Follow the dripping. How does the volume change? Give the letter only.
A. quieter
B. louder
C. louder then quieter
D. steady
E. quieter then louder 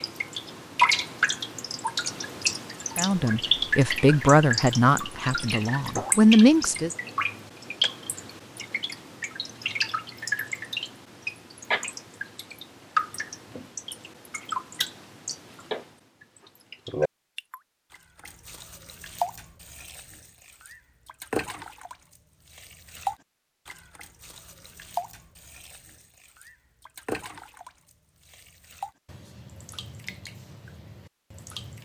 A.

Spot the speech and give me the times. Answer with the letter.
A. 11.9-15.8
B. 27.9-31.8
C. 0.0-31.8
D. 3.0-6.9
D.